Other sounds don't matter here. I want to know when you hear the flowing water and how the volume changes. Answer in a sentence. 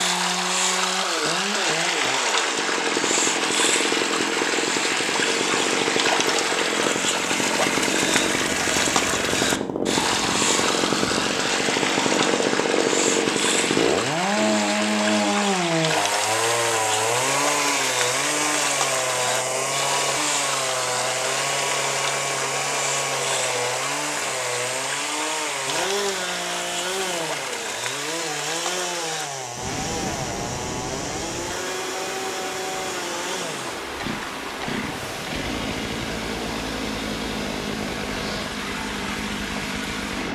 You can hear the flowing water from 0.0 to 40.2 s, getting quieter.